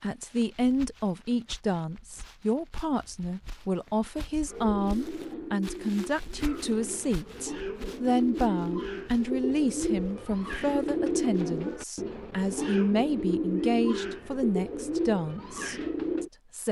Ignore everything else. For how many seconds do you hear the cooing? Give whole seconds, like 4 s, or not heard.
12 s.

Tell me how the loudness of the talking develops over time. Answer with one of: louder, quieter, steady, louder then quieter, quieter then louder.
steady.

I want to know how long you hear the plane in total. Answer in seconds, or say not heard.
not heard.